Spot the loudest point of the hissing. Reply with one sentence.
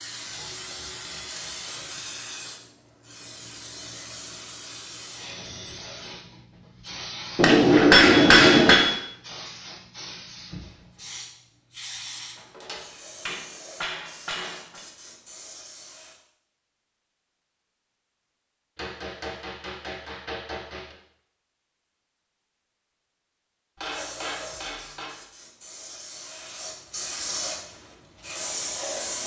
The volume of the hissing peaks at 29 seconds.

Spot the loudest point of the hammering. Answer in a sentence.
The volume of the hammering peaks at 8 seconds.